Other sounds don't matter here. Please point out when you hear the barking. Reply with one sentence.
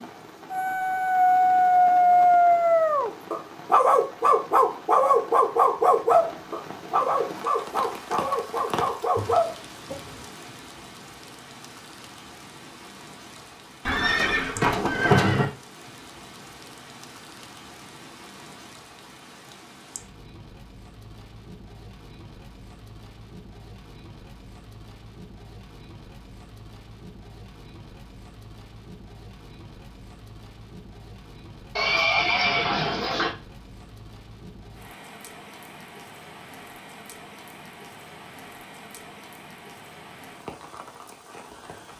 The barking can be heard from 0.5 to 10.2 s.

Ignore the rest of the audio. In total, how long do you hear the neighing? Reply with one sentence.
The neighing can be heard for 3 seconds in total.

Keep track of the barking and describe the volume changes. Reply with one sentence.
The volume of the barking goes down.